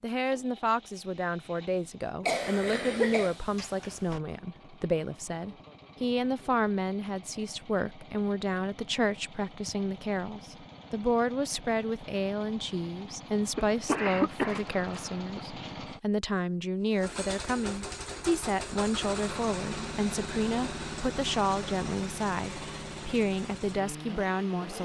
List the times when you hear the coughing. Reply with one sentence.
The coughing can be heard from 2.2 to 3.4 s and from 13.6 to 15.4 s.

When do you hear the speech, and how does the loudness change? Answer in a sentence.
The speech can be heard from 0.0 to 24.8 s, at a steady volume.